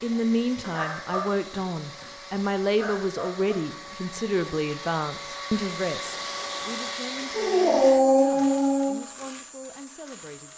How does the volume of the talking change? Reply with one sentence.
The volume of the talking goes down.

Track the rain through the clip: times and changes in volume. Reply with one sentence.
You can't hear the rain here.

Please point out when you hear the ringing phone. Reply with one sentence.
The ringing phone can't be heard in this clip.